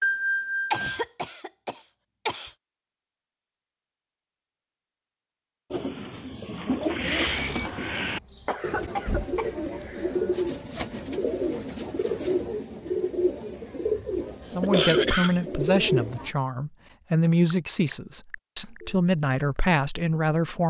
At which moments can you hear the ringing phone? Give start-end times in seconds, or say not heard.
0.0-1.1, 7.0-7.7, 17.2-19.0.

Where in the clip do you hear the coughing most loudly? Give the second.
15 s.